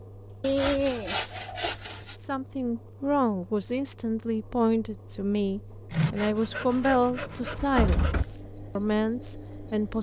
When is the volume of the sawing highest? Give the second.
1 s.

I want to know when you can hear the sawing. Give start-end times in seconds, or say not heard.
0.4-2.1, 5.9-8.2.